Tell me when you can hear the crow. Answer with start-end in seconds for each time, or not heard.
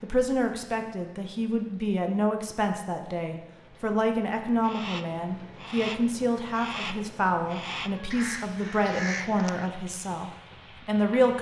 4.6-9.7.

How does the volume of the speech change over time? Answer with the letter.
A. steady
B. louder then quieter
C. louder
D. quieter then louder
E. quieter
A.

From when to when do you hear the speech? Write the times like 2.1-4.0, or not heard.
0.0-11.3.